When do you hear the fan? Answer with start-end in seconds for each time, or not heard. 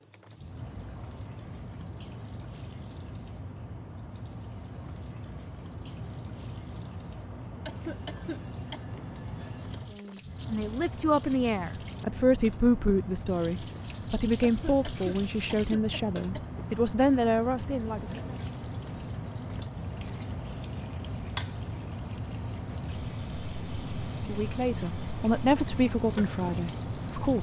0.0-27.3.